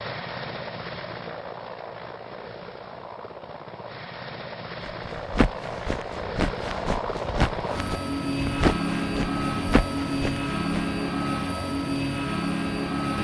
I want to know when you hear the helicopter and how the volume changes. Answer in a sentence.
The helicopter can be heard from 0.0 to 13.1 s, getting louder.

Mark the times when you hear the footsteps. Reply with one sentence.
You can hear the footsteps from 4.8 to 10.8 s.